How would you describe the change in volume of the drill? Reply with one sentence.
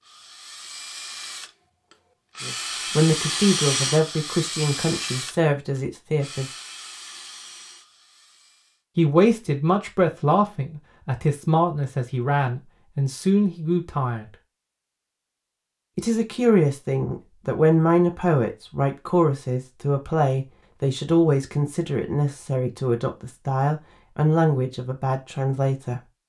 The volume of the drill goes up, then down.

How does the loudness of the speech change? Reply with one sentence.
The loudness of the speech stays about the same.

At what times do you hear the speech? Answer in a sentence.
The speech can be heard from 2.4 to 6.5 s, from 8.9 to 14.3 s and from 15.9 to 26.0 s.